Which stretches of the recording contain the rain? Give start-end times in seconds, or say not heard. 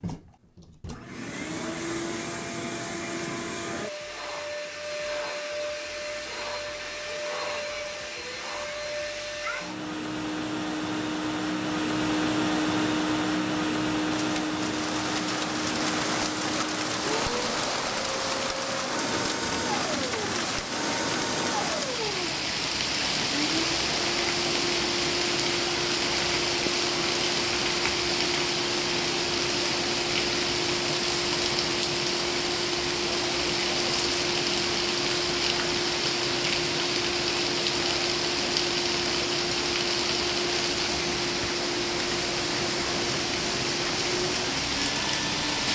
14.1-45.7.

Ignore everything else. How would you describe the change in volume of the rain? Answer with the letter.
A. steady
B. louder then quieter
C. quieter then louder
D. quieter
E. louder
A.